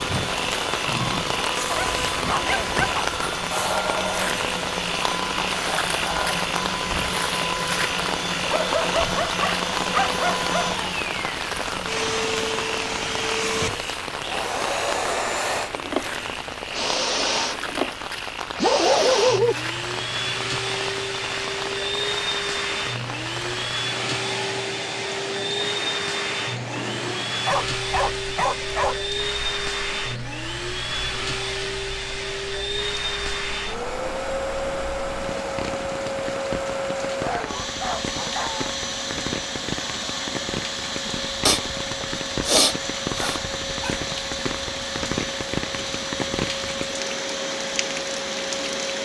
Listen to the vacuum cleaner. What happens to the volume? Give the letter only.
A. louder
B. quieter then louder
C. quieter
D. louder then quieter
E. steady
E.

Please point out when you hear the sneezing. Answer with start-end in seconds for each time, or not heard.
41.5-43.4.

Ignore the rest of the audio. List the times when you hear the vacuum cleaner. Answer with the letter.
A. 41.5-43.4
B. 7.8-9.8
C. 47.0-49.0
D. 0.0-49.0
D.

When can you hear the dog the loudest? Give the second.
19 s.